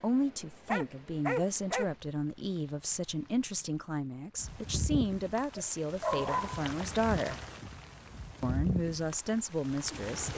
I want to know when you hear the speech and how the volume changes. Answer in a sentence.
You can hear the speech from 0.0 to 7.3 s, at a steady volume; and briefly from 8.4 to 10.3 s.